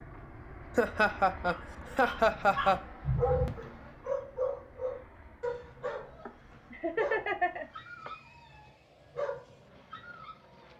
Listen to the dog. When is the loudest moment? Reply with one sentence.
The volume of the dog peaks at 3 seconds.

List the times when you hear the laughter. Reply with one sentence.
You can hear the laughter from 0.8 to 2.8 s and from 6.2 to 8.1 s.